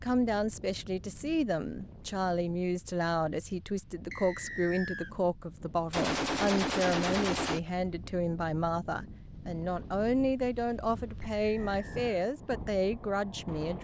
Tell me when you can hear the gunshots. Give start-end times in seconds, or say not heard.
5.9-7.6.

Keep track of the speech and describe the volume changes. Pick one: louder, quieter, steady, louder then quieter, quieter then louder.
steady.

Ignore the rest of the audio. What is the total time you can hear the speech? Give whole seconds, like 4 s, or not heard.
14 s.